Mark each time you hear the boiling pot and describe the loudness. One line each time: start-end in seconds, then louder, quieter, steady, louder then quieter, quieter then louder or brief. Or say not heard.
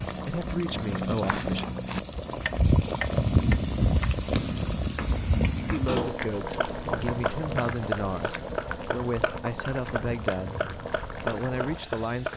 0.0-12.3 louder then quieter.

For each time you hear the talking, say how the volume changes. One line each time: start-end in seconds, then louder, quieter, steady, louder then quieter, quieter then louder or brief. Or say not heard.
0.1-1.7 brief
5.6-12.3 steady.